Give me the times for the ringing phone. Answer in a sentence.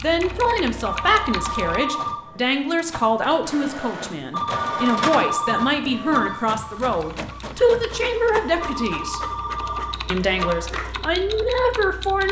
The ringing phone can be heard from 0.8 to 2.5 s, from 4.3 to 6.4 s and from 8.6 to 10.7 s.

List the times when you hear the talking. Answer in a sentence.
The talking can be heard from 0.0 to 9.2 s and from 10.1 to 12.2 s.